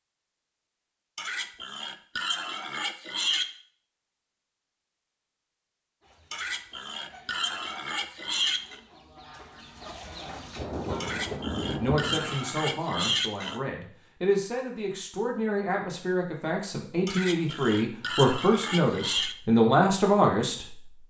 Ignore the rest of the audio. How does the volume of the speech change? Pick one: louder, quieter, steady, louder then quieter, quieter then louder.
louder.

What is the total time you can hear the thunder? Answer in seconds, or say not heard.
2 s.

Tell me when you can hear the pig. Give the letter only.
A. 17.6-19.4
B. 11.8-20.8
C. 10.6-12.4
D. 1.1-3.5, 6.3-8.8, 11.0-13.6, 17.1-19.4
D.